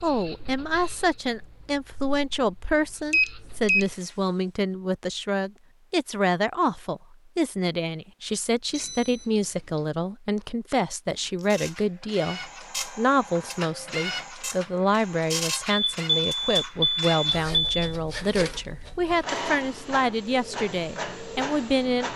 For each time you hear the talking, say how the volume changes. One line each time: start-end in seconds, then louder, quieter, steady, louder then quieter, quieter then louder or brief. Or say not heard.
0.0-22.1 steady.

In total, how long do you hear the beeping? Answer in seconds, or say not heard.
4 s.